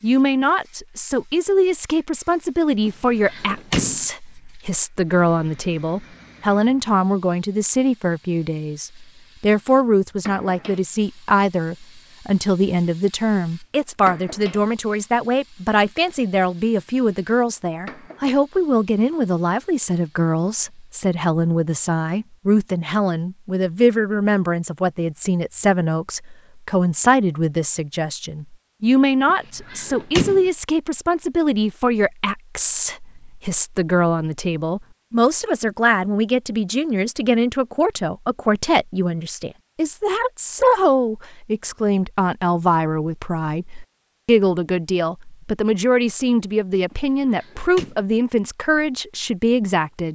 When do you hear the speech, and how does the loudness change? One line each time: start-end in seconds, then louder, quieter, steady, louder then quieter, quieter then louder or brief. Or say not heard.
0.0-50.1 steady.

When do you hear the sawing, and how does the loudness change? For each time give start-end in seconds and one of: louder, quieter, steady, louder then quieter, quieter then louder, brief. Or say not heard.
not heard.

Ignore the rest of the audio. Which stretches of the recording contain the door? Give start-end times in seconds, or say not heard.
2.9-4.0, 29.2-30.5, 46.9-48.0.